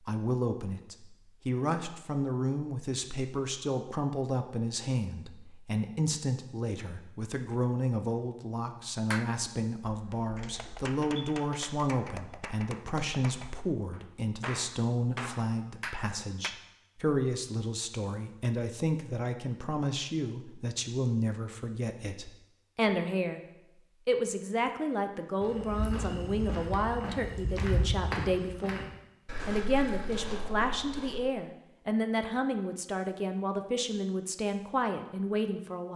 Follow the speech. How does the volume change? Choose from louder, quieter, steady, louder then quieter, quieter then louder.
steady.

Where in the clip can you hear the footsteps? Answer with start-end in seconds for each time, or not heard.
25.4-31.3.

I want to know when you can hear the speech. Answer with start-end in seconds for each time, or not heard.
0.0-28.9, 29.4-35.9.